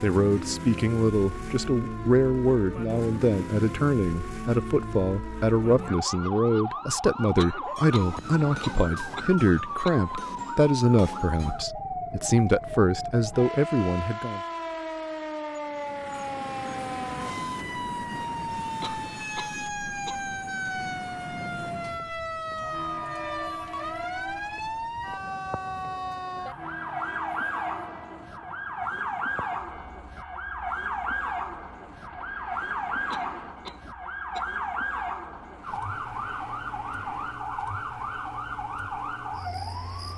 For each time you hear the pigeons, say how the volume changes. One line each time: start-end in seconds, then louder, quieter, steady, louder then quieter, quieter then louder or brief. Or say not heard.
not heard.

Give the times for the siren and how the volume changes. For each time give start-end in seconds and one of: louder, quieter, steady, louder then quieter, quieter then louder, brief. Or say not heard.
0.0-40.1 steady.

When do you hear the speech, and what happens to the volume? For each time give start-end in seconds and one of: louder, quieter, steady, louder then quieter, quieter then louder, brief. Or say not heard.
0.0-14.4 steady.